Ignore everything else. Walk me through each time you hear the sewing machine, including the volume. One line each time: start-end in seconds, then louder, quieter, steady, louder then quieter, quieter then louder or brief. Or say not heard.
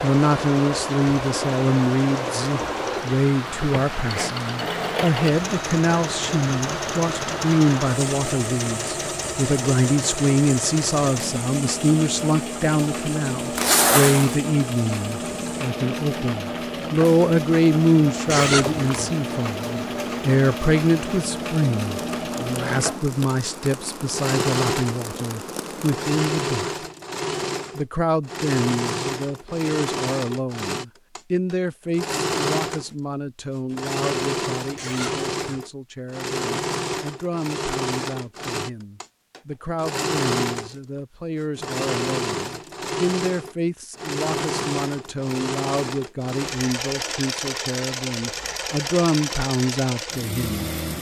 0.0-50.9 steady.